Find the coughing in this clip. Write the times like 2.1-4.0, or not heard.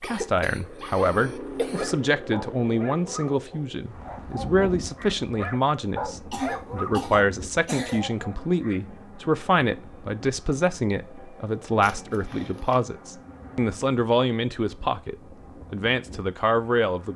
0.0-1.9, 6.3-8.1, 11.8-12.8.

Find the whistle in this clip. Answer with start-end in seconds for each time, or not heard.
not heard.